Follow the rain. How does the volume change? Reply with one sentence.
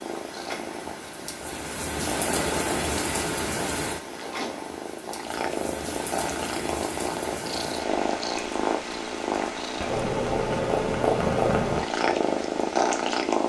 The loudness of the rain goes down.